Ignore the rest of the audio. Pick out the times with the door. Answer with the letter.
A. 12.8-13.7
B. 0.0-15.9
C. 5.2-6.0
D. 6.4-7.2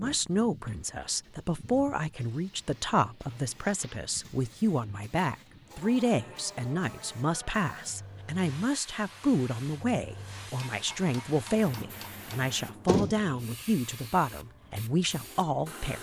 A.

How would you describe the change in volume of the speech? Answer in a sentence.
The loudness of the speech stays about the same.